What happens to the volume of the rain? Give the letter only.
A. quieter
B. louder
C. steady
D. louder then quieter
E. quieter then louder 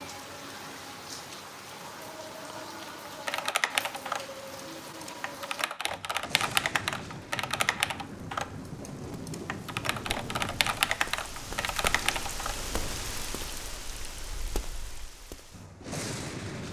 C.